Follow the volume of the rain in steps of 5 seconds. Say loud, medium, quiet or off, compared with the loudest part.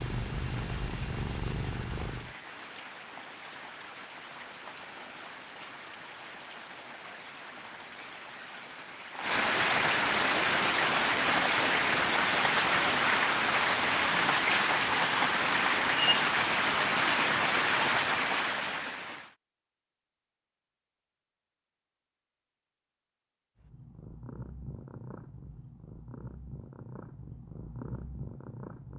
quiet, medium, loud, loud, off, off.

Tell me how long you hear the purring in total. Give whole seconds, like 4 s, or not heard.
8 s.